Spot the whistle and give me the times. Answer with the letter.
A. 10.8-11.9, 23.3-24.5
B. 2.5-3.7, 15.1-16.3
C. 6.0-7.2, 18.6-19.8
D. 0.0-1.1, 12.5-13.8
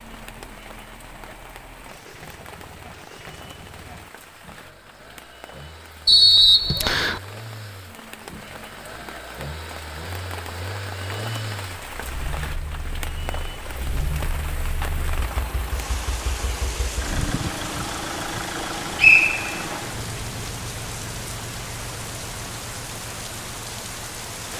C.